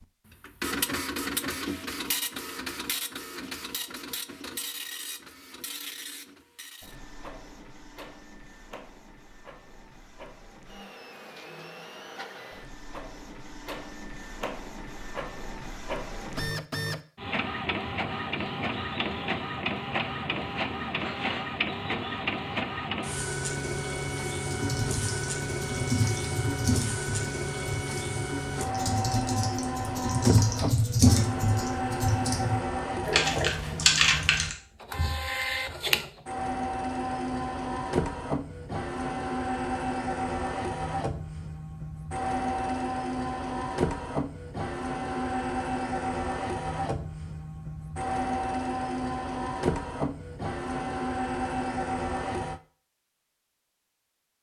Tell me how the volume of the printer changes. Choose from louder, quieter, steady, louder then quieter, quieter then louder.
louder.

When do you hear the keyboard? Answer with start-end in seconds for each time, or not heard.
24.5-34.5.